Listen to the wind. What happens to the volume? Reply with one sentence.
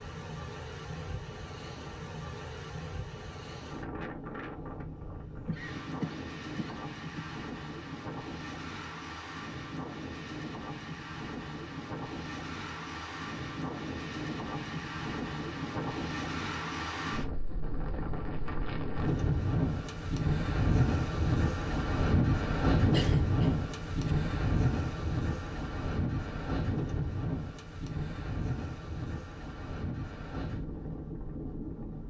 The volume of the wind goes up, then down.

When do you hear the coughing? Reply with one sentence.
The coughing can be heard from 5.5 to 7.3 s and from 22.9 to 24.1 s.